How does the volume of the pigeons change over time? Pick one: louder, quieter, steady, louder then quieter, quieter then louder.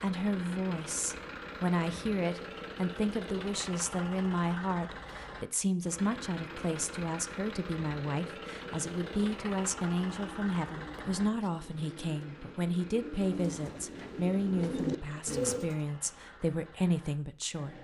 louder.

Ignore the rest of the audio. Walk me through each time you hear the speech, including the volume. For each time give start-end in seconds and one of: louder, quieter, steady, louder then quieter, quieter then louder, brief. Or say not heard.
0.0-17.7 steady.